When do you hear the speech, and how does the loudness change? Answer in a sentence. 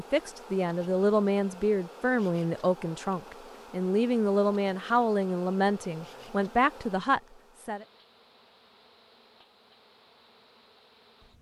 The speech can be heard from 0.0 to 7.8 s, at a steady volume.